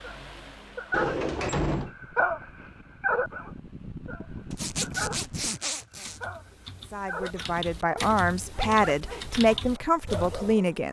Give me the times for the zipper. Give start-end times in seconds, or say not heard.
4.5-6.2.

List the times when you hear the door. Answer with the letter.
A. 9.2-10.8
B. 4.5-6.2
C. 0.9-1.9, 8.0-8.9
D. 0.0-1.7
C.